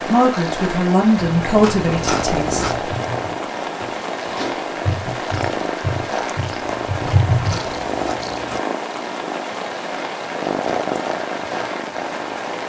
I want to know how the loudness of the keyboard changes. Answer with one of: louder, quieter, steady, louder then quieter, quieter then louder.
quieter then louder.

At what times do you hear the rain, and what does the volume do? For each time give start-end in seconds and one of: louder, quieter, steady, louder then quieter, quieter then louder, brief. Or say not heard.
0.0-12.6 steady.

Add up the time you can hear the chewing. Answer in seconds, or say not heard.
4 s.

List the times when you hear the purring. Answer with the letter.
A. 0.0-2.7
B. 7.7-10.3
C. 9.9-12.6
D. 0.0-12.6
D.